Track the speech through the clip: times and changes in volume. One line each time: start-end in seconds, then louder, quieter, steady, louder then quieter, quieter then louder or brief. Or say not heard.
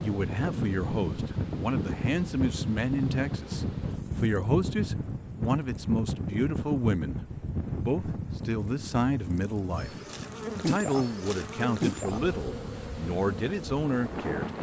0.0-14.5 steady.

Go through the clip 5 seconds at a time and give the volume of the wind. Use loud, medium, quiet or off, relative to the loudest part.
loud, loud, medium.